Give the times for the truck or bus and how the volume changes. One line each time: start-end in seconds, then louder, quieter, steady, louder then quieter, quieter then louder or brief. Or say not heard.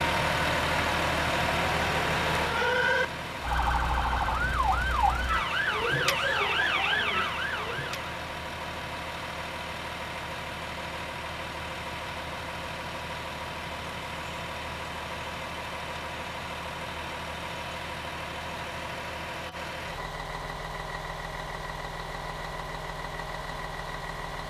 0.0-24.4 quieter.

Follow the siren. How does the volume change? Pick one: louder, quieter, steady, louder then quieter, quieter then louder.
louder.